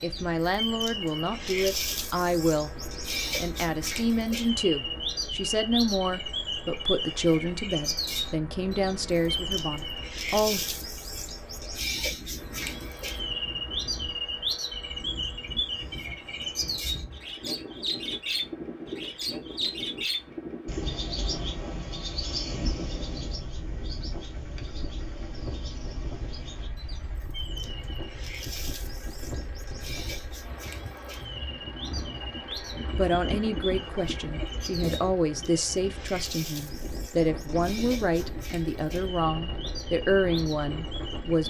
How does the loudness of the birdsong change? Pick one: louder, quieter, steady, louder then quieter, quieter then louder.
quieter.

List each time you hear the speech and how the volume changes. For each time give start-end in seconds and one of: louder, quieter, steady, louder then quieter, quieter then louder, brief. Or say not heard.
0.0-10.7 steady
32.5-41.4 steady.